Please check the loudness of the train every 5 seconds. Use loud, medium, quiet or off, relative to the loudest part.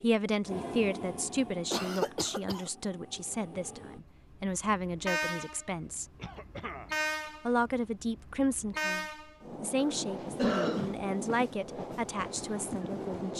medium, loud, loud.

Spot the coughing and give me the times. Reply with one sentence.
You can hear the coughing from 1.7 to 2.6 s, from 6.2 to 6.9 s and from 9.8 to 11.0 s.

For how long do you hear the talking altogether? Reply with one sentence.
You can hear the talking for 12 seconds altogether.